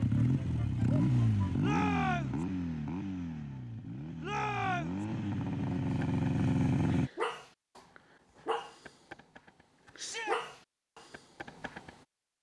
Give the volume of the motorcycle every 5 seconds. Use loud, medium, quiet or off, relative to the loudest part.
loud, loud, off.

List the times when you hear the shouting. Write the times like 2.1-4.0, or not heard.
1.6-2.5, 4.2-5.0, 9.9-10.4.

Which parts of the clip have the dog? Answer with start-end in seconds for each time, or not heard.
6.0-12.1.